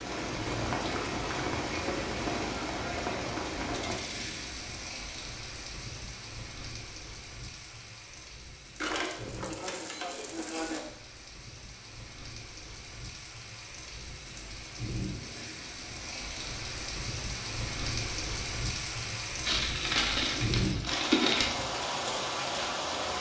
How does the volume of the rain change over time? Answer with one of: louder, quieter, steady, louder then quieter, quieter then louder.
quieter then louder.